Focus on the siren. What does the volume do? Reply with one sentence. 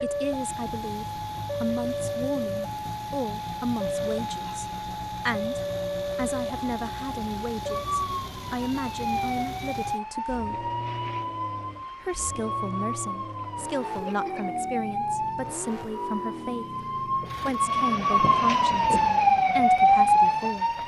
The volume of the siren goes up.